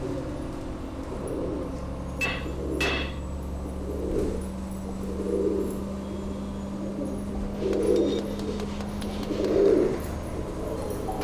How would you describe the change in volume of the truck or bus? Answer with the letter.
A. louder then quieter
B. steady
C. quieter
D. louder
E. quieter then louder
B.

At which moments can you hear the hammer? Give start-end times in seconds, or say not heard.
1.6-3.2, 7.5-9.7.